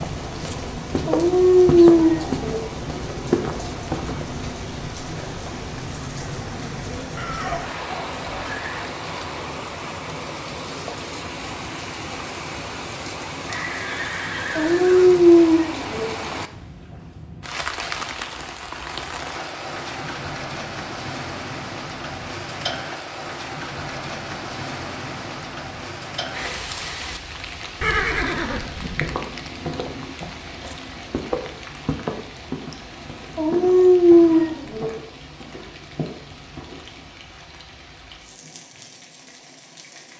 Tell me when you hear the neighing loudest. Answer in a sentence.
The volume of the neighing peaks at 28 seconds.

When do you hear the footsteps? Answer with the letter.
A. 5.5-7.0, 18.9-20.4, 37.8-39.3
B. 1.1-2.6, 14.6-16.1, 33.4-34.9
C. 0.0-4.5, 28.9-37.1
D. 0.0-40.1
C.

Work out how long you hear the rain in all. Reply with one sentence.
The rain can be heard for 40 seconds in total.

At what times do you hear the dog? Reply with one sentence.
You can hear the dog from 1.1 to 2.6 s, from 14.6 to 16.1 s and from 33.4 to 34.9 s.